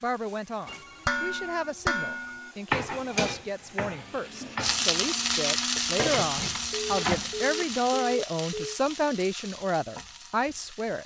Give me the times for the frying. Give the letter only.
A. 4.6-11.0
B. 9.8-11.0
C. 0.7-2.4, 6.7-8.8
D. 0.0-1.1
A.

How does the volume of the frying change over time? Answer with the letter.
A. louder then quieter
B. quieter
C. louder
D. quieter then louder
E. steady
B.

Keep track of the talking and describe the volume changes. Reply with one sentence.
The volume of the talking goes up.